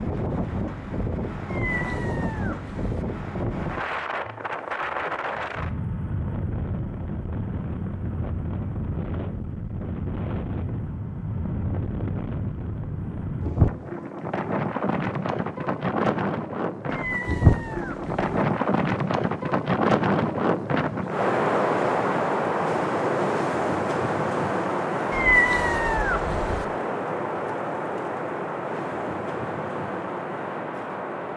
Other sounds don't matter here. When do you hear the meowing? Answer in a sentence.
You can hear the meowing from 1.4 to 3.0 s, from 16.9 to 18.4 s and from 25.1 to 26.6 s.